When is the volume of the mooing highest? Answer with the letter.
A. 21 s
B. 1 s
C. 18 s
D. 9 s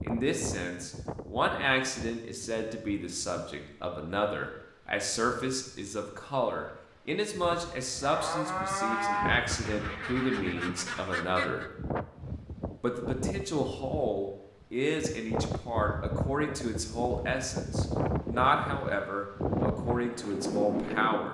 D.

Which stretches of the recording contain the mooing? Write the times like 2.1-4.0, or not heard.
7.5-9.3.